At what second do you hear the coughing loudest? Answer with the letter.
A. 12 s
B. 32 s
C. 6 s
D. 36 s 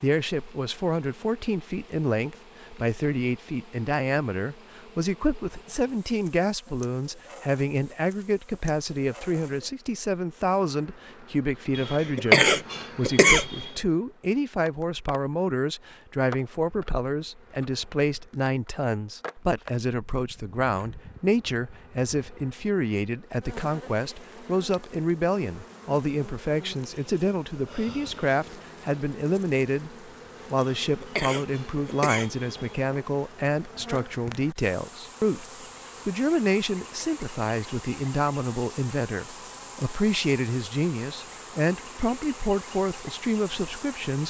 A.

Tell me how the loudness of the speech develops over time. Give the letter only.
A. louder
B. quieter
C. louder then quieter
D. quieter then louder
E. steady
E.